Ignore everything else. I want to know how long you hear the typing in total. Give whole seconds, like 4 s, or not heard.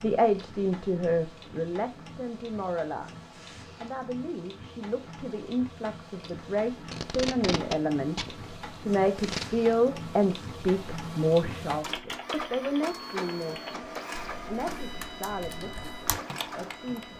5 s.